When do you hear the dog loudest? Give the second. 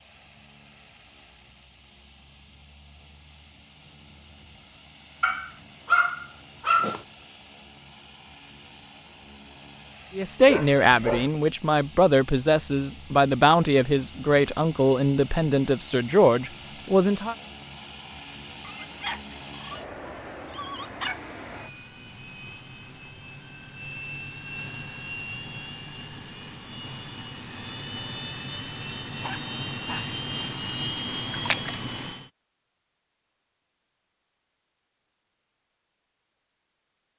6 s.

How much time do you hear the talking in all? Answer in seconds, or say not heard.
7 s.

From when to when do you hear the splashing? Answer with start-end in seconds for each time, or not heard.
31.3-31.9.